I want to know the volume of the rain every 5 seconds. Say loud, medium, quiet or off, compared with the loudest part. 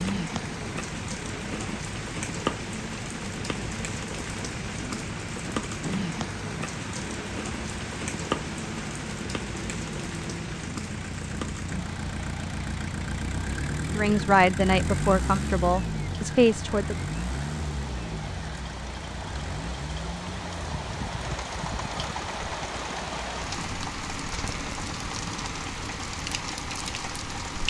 loud, loud, medium, medium, loud, loud.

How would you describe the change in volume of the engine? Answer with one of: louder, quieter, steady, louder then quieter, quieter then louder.
louder then quieter.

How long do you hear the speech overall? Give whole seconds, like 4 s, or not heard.
3 s.